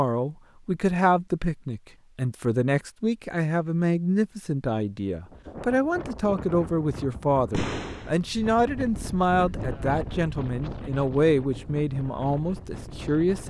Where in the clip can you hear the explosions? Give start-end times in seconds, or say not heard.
7.5-8.2.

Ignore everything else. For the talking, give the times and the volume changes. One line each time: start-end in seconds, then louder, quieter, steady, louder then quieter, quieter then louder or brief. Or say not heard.
0.0-13.4 steady.